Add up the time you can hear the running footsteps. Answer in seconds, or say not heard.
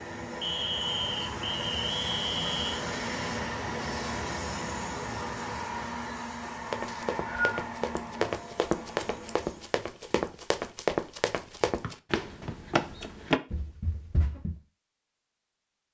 8 s.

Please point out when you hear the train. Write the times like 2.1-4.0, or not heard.
0.0-9.8.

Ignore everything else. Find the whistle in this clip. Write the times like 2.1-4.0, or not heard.
0.4-2.9, 6.8-7.6, 11.8-13.1.